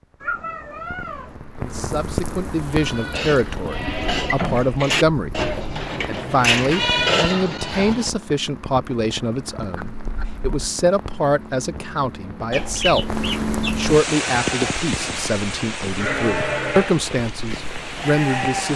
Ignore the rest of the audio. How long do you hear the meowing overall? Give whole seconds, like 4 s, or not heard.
2 s.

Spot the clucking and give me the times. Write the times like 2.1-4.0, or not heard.
12.5-13.9.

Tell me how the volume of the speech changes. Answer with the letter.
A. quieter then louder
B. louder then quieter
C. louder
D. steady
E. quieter
D.